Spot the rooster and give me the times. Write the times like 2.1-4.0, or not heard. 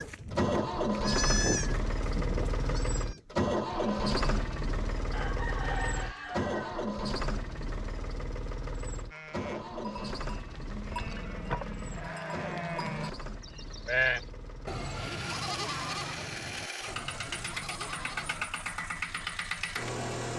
5.1-6.9.